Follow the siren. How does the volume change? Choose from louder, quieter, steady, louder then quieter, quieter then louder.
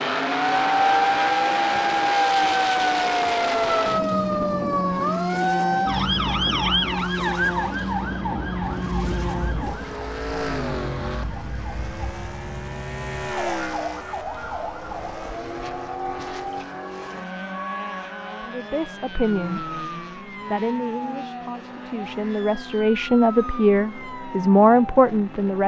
quieter.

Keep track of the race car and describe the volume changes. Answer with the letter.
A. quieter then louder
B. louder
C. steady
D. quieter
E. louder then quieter
D.